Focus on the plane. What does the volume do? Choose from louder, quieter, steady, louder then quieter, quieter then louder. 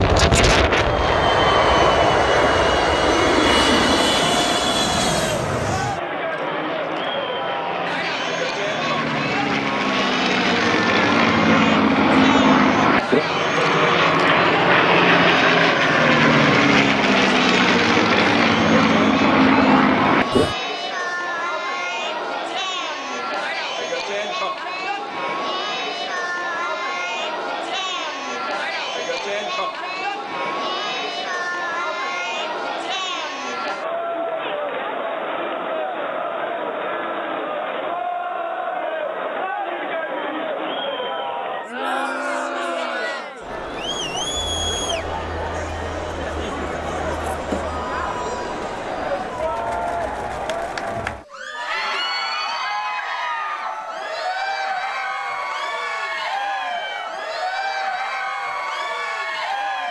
quieter then louder.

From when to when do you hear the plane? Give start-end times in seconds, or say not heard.
0.0-20.6.